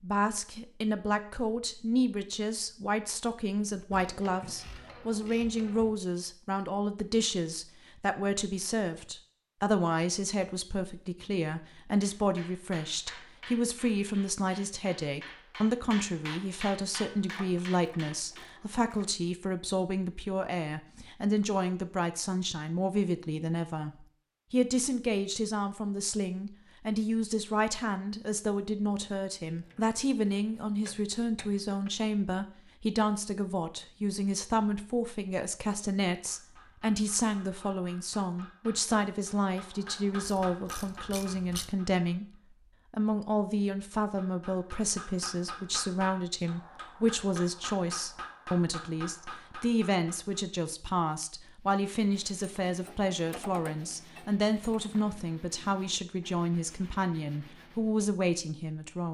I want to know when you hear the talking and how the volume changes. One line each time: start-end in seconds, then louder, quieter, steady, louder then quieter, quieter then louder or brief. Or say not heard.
0.0-59.0 steady.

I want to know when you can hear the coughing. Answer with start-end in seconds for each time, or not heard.
not heard.